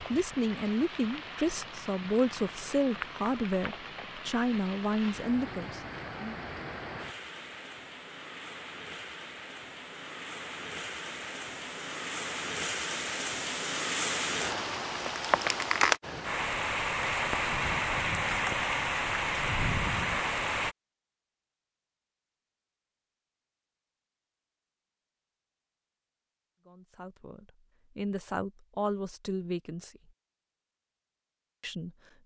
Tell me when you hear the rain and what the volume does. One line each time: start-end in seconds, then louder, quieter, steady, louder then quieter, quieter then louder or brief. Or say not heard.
0.0-20.8 louder.